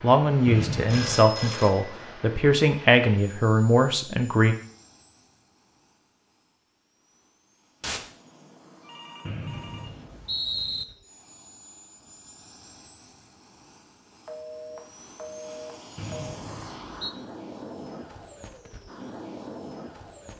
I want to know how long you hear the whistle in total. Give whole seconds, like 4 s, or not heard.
3 s.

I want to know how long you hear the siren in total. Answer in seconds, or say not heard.
not heard.